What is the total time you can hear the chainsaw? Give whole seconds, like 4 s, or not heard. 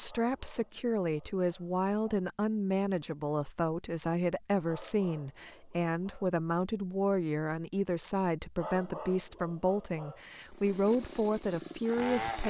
2 s.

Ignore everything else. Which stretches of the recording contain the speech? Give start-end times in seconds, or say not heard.
0.0-12.4.